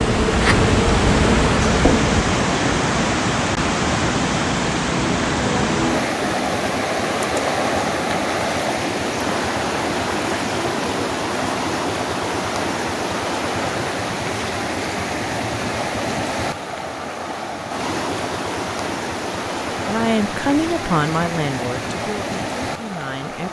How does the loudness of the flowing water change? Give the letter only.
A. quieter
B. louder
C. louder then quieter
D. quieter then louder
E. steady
A.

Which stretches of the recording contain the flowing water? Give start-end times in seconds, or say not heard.
0.0-23.4.